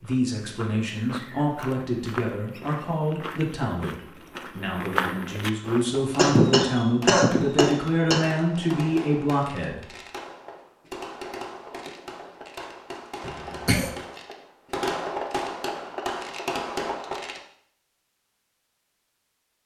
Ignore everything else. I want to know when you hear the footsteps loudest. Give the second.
5 s.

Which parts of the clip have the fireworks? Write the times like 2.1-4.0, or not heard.
5.6-17.4.